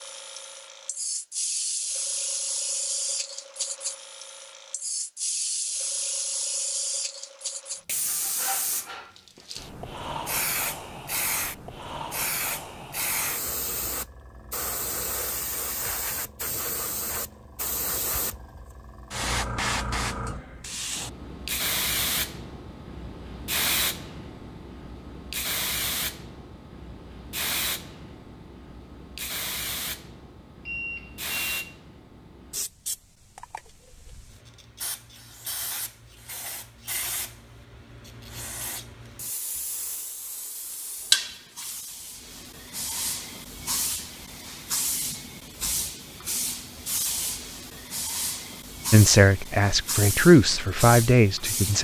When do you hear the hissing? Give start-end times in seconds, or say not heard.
0.0-51.7.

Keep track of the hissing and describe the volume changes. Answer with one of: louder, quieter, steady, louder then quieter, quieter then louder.
quieter then louder.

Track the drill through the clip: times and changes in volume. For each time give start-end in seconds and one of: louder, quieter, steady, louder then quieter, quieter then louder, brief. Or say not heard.
not heard.